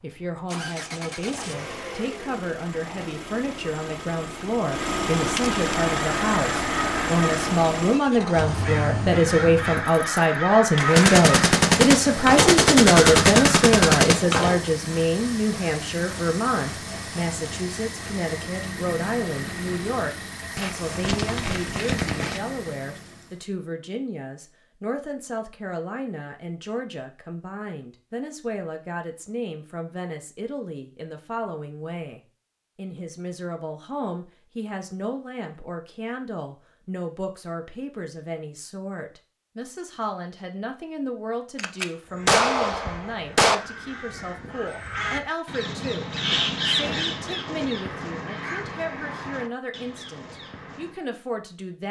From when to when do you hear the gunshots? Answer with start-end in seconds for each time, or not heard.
10.9-14.2, 20.6-22.4, 41.5-43.5.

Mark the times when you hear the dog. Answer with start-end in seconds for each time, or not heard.
not heard.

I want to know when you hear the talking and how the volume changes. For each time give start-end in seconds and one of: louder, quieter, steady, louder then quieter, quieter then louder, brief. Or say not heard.
0.0-51.8 quieter.